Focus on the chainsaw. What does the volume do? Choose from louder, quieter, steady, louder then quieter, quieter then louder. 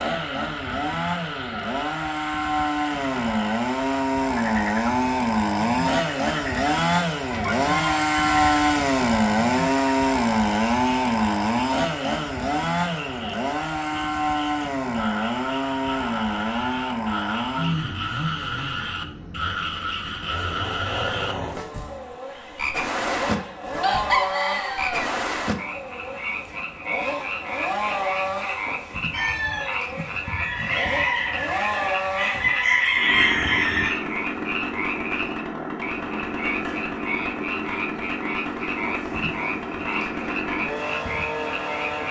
quieter.